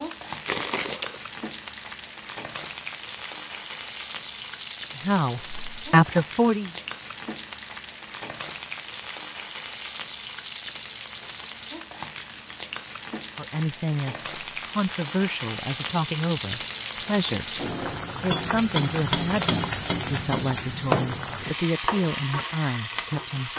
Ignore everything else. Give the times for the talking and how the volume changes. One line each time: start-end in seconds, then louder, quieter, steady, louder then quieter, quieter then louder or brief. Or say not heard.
5.0-6.8 brief
13.3-23.5 steady.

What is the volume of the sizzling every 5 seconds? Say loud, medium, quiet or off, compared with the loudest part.
medium, medium, medium, loud, loud.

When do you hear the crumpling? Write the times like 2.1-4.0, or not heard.
0.5-1.2.